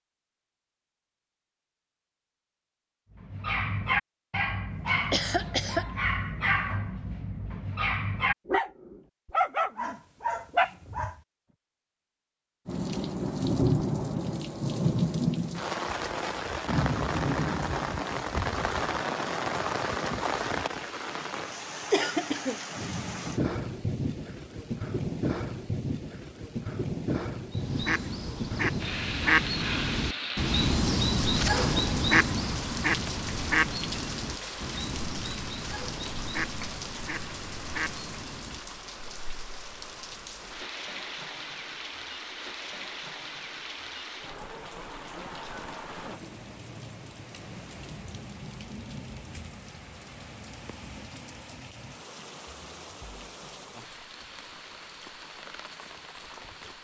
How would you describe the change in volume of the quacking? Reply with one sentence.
The loudness of the quacking goes down.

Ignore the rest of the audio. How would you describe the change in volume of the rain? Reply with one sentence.
The loudness of the rain goes down.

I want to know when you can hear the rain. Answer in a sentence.
The rain can be heard from 12.7 to 56.8 s.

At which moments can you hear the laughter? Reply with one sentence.
You can hear the laughter from 5.0 to 5.8 s.